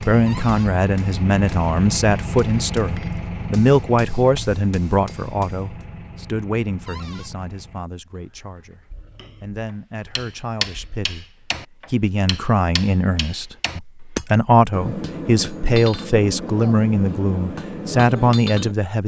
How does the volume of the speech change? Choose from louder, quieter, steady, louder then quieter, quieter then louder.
quieter then louder.